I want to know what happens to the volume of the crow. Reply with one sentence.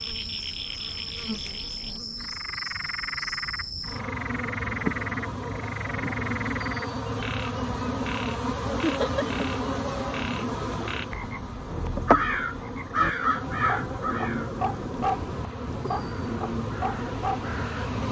The loudness of the crow goes down, then up.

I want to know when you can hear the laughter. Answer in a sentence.
You can hear the laughter from 8.8 to 9.2 s.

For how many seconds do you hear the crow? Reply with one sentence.
The crow can be heard for 6 seconds in total.